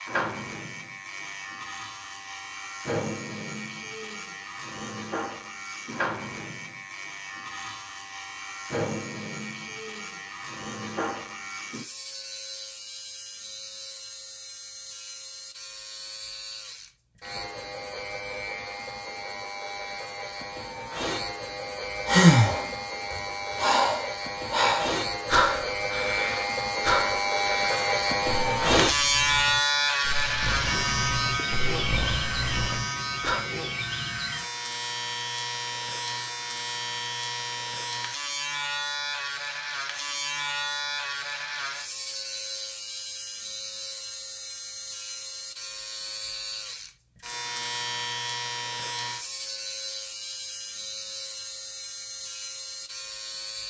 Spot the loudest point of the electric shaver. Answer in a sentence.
The loudest moment of the electric shaver is at 29 seconds.